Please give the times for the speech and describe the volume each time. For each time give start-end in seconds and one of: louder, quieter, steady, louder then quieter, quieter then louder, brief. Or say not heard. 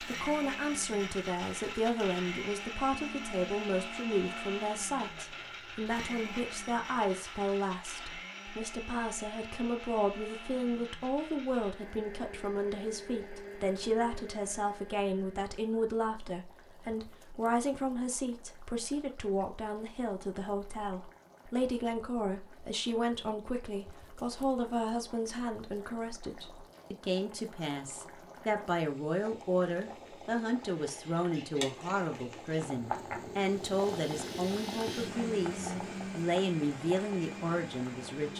0.0-38.3 steady.